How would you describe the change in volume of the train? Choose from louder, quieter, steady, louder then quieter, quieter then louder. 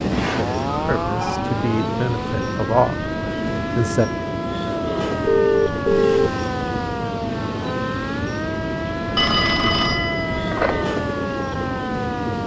steady.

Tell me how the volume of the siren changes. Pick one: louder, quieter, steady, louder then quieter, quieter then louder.
steady.